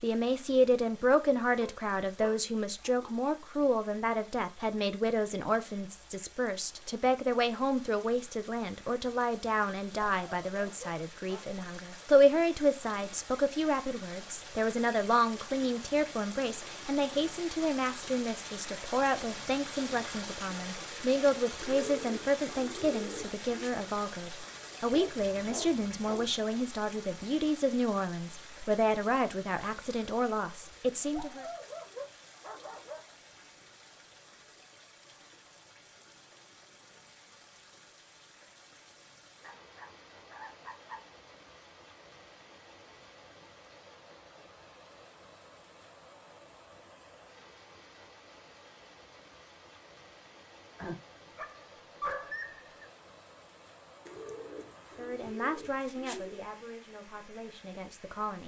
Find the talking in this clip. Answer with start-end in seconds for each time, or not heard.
0.0-31.4, 55.0-58.4.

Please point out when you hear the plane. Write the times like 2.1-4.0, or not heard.
not heard.